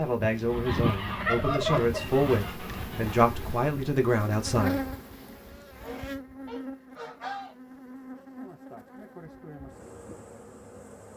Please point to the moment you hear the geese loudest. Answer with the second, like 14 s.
2 s.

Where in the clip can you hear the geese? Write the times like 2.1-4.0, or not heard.
0.2-3.1, 5.8-7.5.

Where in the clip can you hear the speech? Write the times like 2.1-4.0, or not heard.
0.0-4.8.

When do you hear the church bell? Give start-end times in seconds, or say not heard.
not heard.